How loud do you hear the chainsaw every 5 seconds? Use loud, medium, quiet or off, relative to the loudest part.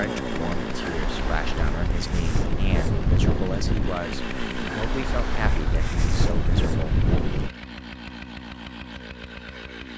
loud, medium.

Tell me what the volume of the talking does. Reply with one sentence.
The loudness of the talking stays about the same.